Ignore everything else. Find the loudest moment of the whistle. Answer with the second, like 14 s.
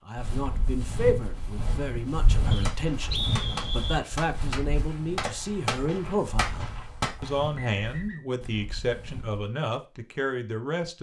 3 s.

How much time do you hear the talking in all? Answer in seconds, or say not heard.
11 s.